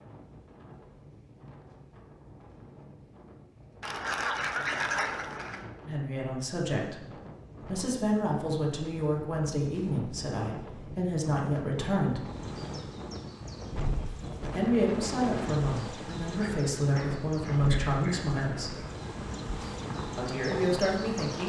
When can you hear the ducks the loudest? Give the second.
5 s.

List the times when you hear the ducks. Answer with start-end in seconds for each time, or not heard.
3.8-5.7, 16.4-18.9.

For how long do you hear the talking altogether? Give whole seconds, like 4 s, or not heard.
12 s.